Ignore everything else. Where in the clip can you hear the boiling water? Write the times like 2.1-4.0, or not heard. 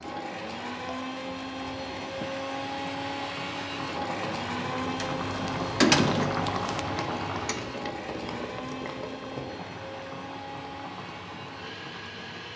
0.0-12.5.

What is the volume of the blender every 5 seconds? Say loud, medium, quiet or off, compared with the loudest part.
loud, loud, medium.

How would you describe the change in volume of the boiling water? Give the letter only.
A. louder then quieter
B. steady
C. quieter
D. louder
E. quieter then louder
A.